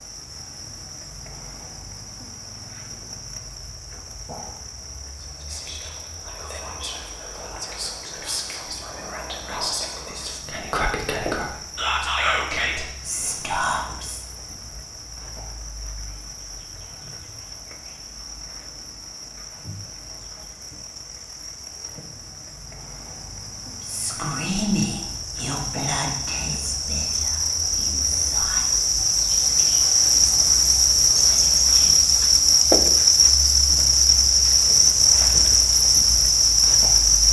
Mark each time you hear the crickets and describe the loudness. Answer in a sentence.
You can hear the crickets from 0.0 to 37.2 s, getting louder.